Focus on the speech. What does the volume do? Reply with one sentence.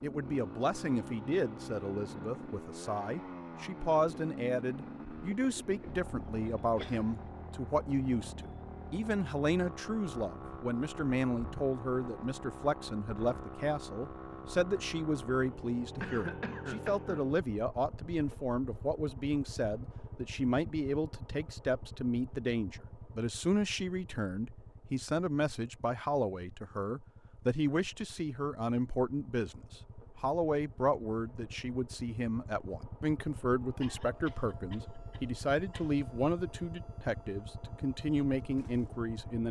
The volume of the speech stays about the same.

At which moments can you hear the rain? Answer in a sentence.
You can't hear the rain here.